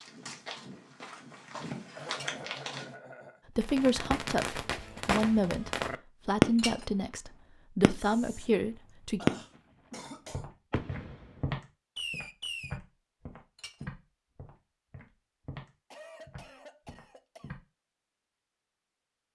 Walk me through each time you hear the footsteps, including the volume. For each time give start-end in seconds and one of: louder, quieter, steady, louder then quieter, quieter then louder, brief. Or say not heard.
0.0-3.0 brief
10.3-17.6 quieter.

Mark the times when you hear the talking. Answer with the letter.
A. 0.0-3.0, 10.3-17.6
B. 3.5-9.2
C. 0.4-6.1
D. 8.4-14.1
B.